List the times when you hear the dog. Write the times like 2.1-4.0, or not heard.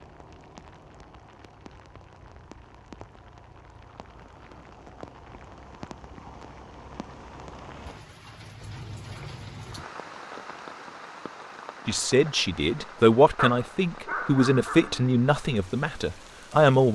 13.3-15.1.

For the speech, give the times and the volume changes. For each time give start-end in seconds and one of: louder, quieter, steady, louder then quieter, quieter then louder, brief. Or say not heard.
11.8-16.9 quieter.